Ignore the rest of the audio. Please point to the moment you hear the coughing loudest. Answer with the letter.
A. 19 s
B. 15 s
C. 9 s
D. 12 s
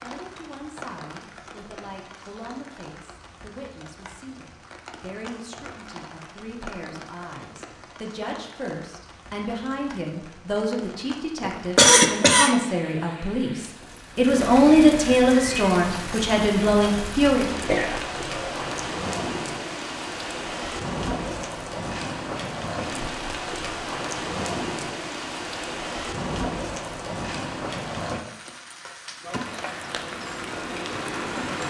D.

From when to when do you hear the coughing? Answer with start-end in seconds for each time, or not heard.
11.4-12.6, 17.6-18.6.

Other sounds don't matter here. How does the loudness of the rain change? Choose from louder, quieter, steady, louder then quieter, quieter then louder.
louder.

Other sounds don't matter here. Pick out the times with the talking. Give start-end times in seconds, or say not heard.
0.0-17.5.